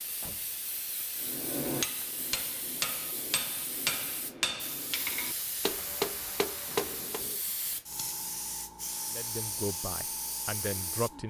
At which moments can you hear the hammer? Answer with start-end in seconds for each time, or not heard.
1.2-7.2.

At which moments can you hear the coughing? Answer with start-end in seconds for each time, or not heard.
not heard.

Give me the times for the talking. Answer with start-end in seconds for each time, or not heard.
9.1-11.2.